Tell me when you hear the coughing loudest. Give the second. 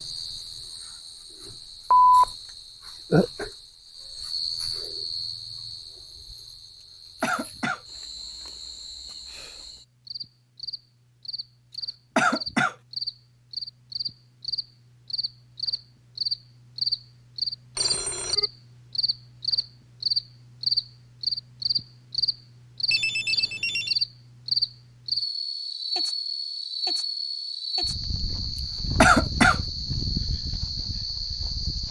29 s.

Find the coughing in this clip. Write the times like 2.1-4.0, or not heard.
6.8-7.8, 11.7-12.8, 28.6-29.6.